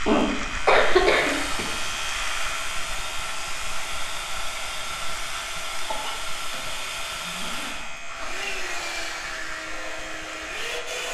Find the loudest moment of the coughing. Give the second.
1 s.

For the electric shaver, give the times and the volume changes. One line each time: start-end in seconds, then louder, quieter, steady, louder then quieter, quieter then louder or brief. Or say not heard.
0.0-11.1 quieter.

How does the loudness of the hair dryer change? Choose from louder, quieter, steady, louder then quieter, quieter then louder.
steady.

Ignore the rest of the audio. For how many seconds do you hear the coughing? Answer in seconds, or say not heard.
4 s.